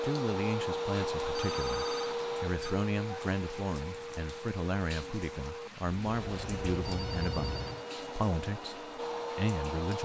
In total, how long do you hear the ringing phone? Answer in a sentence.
The ringing phone can be heard for 3 seconds in total.